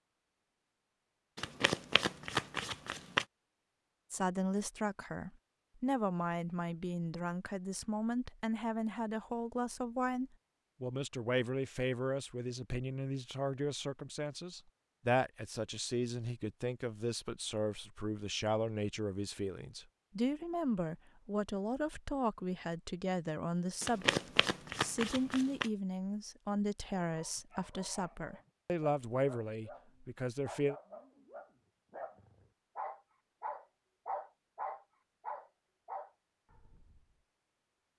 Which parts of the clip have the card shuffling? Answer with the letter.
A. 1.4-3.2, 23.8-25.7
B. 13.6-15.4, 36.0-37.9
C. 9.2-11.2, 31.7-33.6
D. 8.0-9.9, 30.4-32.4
A.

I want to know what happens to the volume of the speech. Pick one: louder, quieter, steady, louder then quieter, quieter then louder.
steady.